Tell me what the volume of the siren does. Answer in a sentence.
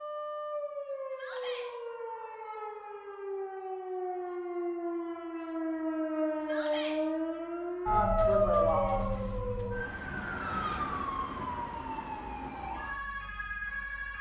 The loudness of the siren goes up, then down.